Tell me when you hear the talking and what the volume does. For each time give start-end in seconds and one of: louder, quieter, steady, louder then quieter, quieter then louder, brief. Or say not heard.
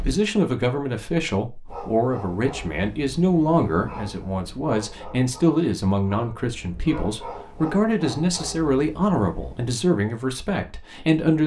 0.0-11.4 steady.